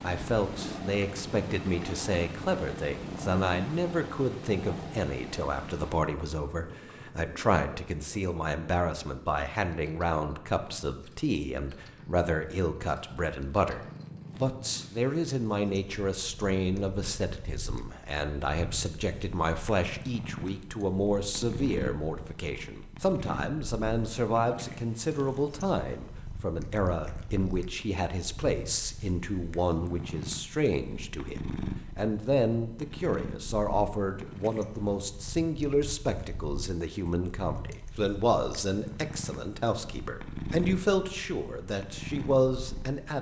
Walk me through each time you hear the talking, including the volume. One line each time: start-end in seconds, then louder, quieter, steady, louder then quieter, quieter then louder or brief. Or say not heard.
0.0-43.1 steady.